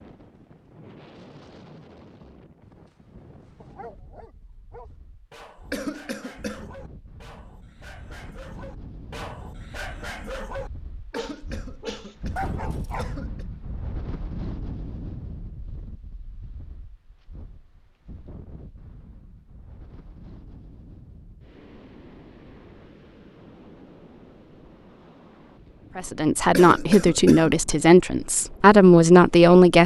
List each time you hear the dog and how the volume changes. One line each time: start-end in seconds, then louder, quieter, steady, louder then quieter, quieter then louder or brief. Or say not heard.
3.6-13.2 louder.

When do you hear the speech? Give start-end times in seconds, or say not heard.
25.9-29.8.